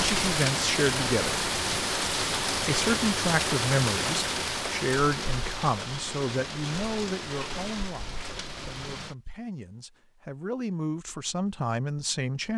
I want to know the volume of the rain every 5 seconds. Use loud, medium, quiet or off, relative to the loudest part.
loud, medium, off.